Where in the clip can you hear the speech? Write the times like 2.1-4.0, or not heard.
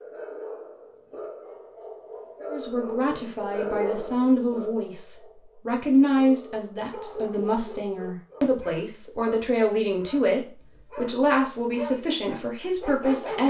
2.5-13.4.